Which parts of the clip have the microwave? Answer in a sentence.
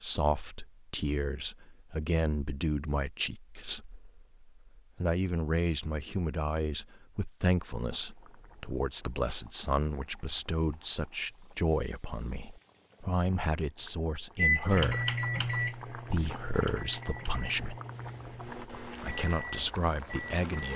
The microwave can be heard from 14.3 to 20.7 s.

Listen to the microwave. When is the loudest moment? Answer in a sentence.
The loudest moment of the microwave is at 15 seconds.